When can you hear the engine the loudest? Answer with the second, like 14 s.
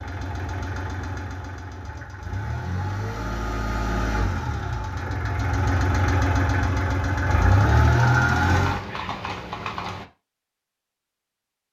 8 s.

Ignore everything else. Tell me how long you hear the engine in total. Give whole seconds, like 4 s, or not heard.
9 s.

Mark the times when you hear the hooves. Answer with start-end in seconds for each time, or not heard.
8.5-10.1.